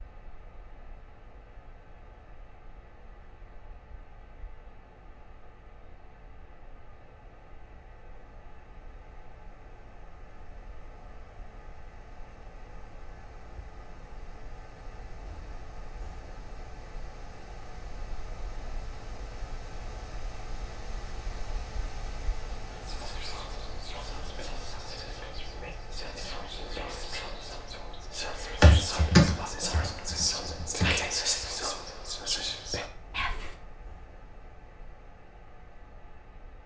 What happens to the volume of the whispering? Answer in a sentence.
The loudness of the whispering goes up.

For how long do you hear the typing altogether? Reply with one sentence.
The typing can be heard for 2 seconds in total.